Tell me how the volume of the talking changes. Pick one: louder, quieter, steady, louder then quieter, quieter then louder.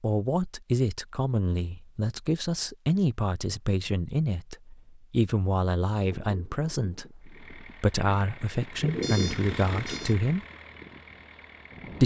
steady.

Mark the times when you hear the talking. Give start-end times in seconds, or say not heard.
0.0-10.4.